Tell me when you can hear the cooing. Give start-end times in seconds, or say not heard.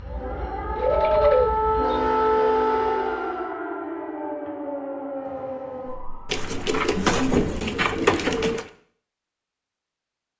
0.8-2.5, 6.3-8.7.